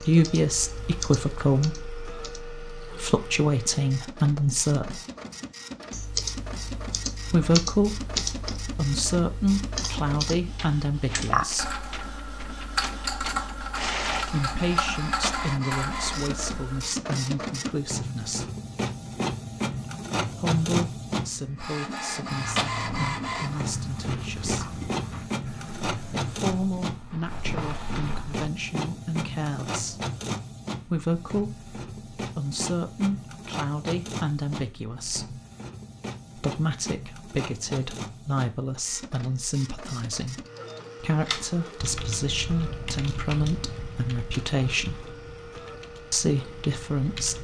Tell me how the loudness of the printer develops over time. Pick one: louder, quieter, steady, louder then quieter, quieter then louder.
louder then quieter.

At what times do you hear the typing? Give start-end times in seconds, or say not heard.
0.1-2.5, 5.9-16.9, 41.2-47.3.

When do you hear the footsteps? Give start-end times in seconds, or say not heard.
22.2-28.4.